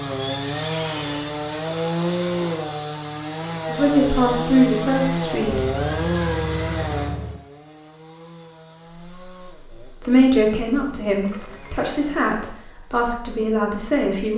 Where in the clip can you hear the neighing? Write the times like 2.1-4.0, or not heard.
0.1-1.4, 5.5-7.4, 11.2-12.0.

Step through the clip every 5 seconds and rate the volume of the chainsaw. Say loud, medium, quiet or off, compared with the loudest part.
loud, loud, quiet.